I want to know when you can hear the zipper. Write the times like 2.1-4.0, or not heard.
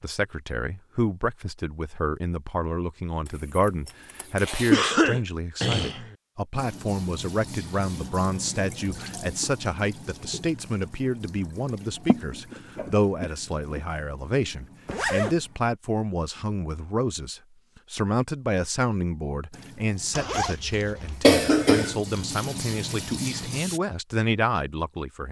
3.2-4.8, 14.8-15.4, 20.1-21.3.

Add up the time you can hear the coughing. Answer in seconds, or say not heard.
4 s.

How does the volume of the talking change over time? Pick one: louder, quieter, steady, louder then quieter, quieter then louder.
steady.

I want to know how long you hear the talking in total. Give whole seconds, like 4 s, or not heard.
25 s.